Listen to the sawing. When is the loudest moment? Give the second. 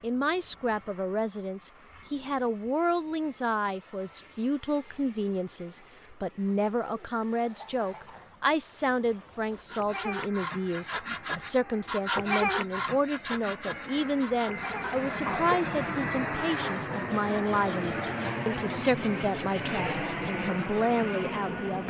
12 s.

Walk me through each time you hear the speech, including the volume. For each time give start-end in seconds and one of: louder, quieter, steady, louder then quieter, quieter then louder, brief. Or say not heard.
0.0-21.8 steady.